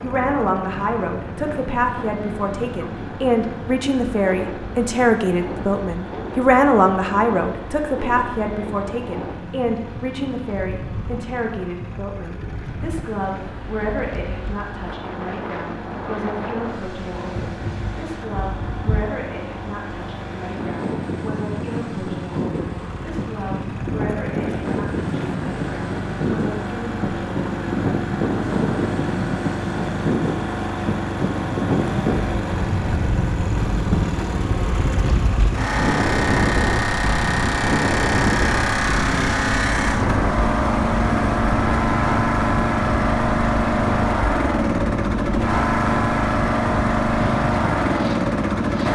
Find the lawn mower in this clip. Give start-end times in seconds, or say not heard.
0.0-48.9.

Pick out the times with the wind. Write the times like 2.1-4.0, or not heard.
0.0-48.9.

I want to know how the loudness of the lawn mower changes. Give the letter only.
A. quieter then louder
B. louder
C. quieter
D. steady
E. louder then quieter
B.